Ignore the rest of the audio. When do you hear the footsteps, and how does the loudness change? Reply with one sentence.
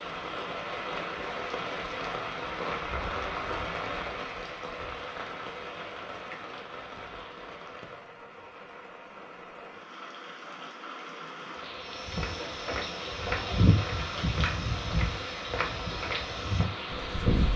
The footsteps can be heard from 11.9 to 17.5 s, getting louder then quieter.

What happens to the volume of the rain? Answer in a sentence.
The loudness of the rain goes down, then up.